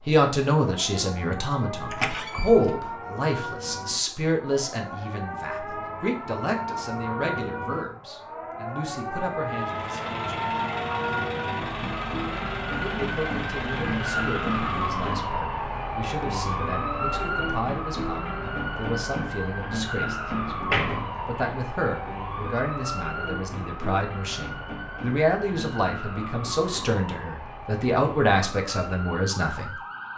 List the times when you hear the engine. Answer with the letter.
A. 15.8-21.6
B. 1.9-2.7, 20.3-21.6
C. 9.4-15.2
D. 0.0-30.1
C.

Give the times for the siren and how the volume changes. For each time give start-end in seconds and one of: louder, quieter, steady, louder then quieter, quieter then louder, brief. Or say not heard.
0.0-30.1 louder then quieter.